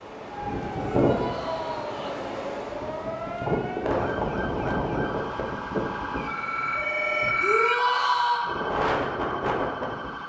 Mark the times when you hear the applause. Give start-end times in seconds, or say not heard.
not heard.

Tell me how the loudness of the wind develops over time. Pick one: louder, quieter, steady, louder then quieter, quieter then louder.
quieter then louder.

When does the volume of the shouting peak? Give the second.
8 s.